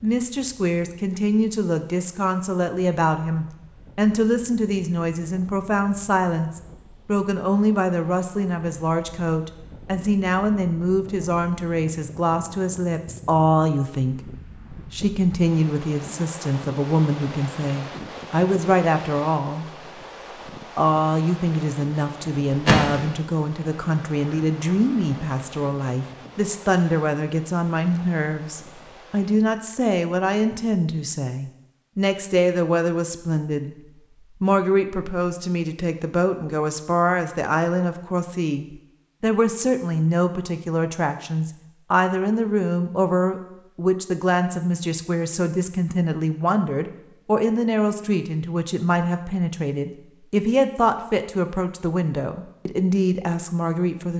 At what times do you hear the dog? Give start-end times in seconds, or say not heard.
not heard.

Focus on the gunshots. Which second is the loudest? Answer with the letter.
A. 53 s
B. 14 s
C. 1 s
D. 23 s
D.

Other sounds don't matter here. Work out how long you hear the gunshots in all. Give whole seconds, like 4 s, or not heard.
2 s.